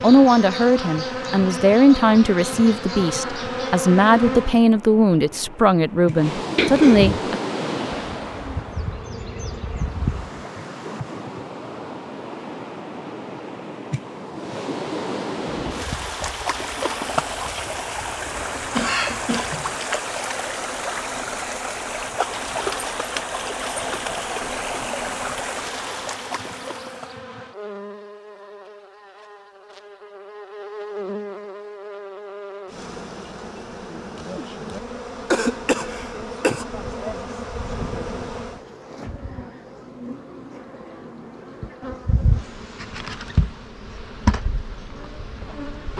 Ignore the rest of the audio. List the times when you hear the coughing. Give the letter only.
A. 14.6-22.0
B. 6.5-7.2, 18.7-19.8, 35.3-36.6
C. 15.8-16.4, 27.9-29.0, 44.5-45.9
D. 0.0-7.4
B.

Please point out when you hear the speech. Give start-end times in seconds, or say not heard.
0.0-7.4.